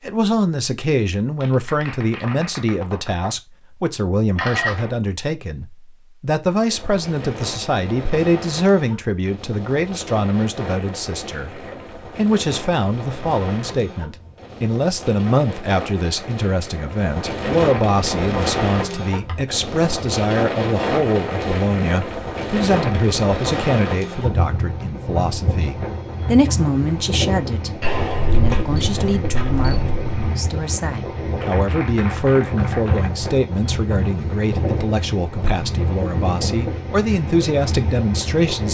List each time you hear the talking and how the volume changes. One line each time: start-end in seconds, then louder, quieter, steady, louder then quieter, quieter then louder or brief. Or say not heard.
0.0-38.6 steady.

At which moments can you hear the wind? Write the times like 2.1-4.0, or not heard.
6.7-38.6.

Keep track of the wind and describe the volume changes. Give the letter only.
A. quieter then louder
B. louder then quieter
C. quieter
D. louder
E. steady
D.